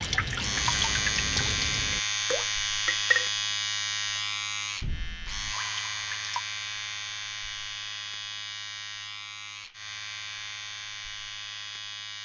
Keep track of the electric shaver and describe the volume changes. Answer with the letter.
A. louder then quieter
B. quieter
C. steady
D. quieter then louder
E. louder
B.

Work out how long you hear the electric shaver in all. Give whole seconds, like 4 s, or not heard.
12 s.